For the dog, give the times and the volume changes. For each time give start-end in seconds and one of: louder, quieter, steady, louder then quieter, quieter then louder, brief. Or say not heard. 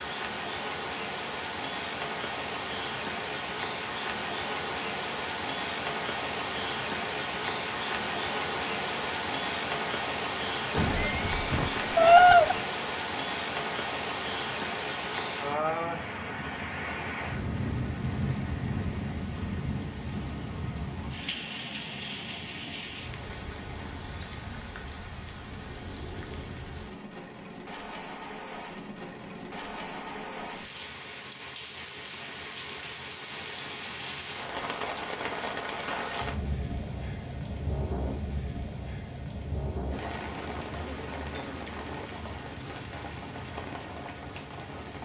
not heard.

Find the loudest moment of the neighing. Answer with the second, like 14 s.
12 s.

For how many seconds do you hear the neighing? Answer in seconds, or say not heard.
2 s.